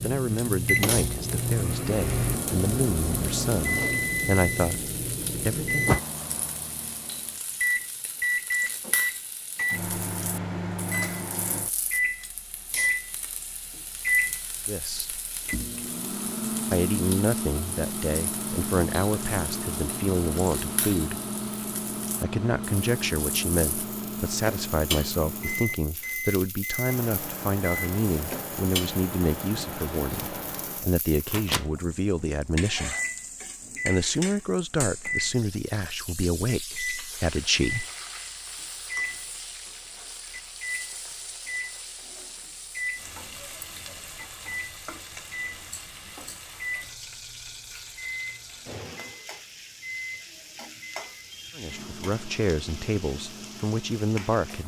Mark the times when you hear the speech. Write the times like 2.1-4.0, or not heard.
0.0-6.0, 14.7-15.2, 16.7-21.2, 22.2-33.0, 33.9-37.9, 51.5-54.6.